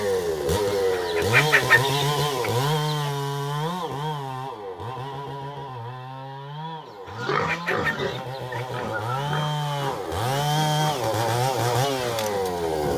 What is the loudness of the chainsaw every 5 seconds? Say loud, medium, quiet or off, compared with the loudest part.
loud, medium, loud.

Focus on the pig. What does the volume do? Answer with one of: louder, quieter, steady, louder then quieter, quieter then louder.
quieter.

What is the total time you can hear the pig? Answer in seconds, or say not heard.
6 s.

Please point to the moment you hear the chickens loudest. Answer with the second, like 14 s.
2 s.